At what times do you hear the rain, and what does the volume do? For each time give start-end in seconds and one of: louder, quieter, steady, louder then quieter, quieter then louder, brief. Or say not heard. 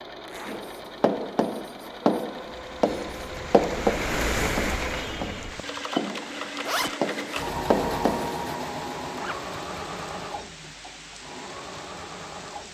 2.4-12.6 quieter.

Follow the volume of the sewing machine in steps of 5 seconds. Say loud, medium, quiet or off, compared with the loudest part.
medium, loud, medium.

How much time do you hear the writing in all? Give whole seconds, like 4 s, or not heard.
8 s.